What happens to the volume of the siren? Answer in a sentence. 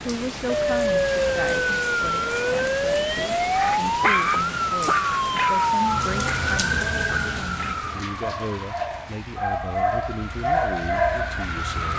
The loudness of the siren goes down.